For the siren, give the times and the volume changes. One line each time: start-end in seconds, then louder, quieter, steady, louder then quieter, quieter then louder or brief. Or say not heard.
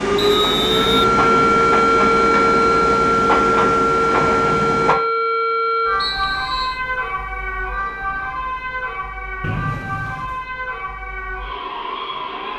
0.0-12.5 quieter.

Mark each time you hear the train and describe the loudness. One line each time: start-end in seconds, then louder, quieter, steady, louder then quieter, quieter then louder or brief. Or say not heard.
0.0-5.0 steady.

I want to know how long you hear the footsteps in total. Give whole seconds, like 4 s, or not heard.
not heard.